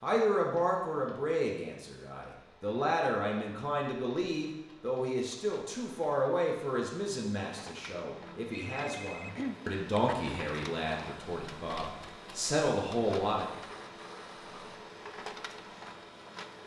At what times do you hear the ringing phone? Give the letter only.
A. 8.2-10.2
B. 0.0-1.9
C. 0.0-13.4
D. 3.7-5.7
A.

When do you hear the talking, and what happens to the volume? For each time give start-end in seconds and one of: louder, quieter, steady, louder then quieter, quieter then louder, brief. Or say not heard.
0.0-13.4 steady.